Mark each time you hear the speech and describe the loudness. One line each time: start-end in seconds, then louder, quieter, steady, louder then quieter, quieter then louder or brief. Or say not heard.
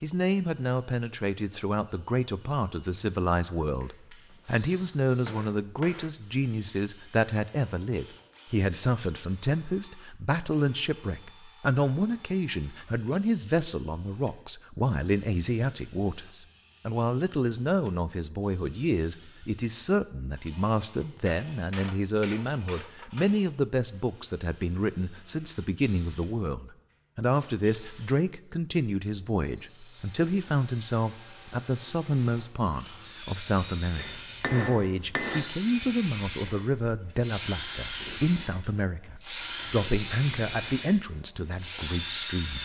0.0-42.5 steady.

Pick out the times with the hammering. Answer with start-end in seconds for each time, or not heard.
4.3-6.2, 21.2-23.4, 34.0-35.5.